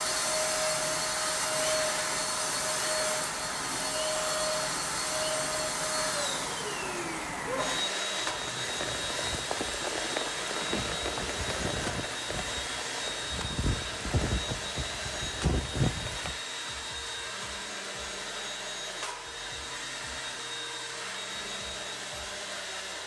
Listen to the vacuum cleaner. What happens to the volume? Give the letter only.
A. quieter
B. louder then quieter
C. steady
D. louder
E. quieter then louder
A.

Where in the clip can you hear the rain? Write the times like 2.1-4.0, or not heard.
0.0-16.4.